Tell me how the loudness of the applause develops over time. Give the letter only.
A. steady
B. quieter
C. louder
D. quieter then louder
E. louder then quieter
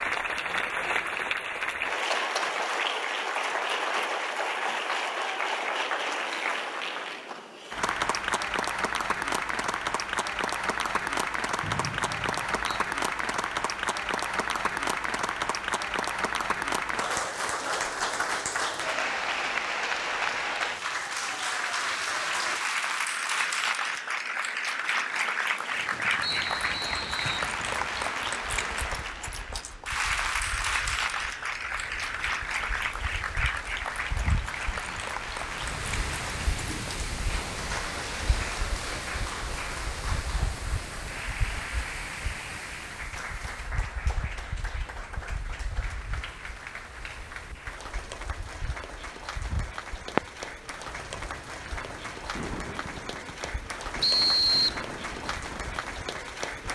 B.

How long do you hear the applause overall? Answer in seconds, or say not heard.
57 s.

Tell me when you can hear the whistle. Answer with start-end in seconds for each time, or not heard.
11.6-12.8, 26.2-27.5, 54.0-54.8.